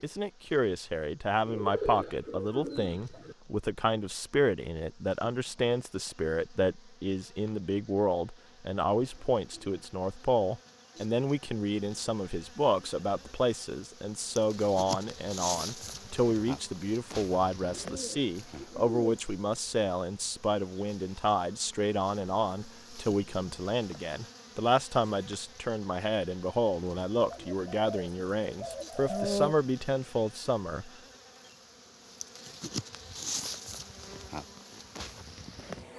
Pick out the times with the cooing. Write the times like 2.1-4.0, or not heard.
1.4-3.4, 17.8-19.2, 27.3-29.6.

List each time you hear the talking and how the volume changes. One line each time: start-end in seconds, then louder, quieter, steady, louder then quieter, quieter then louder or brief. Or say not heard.
0.0-30.9 steady.